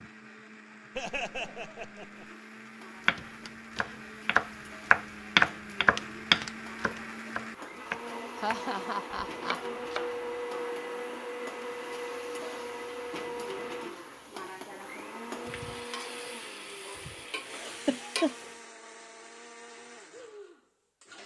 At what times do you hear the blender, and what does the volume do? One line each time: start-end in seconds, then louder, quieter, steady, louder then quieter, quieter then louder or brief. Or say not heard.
0.0-21.2 louder then quieter.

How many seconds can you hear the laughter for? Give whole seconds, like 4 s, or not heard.
3 s.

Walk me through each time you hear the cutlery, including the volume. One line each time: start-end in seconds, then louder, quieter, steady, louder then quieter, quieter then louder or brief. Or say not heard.
not heard.